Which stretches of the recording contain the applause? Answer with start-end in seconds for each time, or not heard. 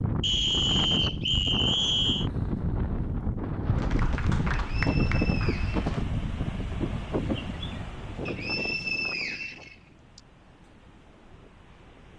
3.7-6.0.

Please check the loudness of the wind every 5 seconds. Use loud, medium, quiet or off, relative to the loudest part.
loud, loud, quiet.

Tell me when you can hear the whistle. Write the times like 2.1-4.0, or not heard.
0.2-2.3, 4.7-5.9, 8.2-10.2.